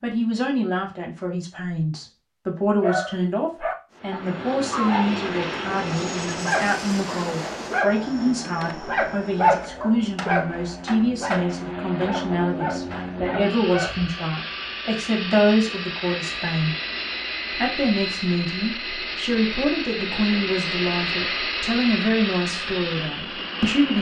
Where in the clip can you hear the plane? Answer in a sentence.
You can hear the plane from 4.0 to 23.9 s.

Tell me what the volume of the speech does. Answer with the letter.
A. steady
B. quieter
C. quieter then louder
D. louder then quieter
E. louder
A.